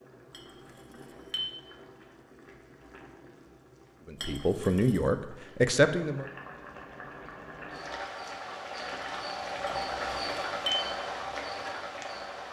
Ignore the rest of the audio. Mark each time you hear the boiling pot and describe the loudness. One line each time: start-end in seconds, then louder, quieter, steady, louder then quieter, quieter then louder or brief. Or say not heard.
0.0-12.4 louder.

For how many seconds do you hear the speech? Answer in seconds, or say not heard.
2 s.